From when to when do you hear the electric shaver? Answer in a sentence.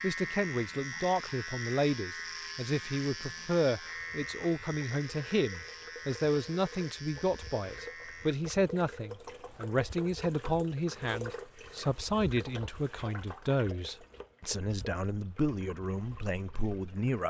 The electric shaver can be heard from 0.0 to 8.3 s.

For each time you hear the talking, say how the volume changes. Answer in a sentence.
You can hear the talking from 0.0 to 17.2 s, at a steady volume.